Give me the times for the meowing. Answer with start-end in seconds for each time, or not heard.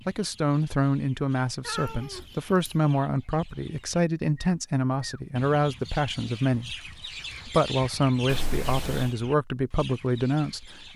1.6-2.7, 8.2-9.2.